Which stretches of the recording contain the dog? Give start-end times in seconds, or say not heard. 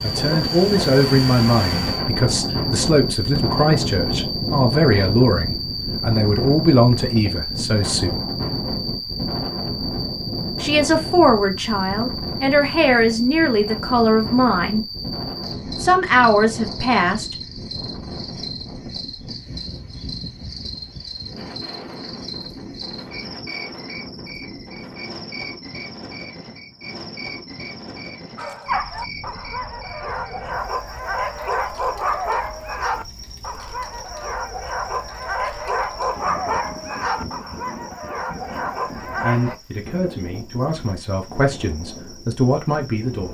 28.4-39.5.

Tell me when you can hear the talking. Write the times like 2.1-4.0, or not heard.
0.0-8.2, 10.6-14.8, 15.8-17.4, 39.0-43.2.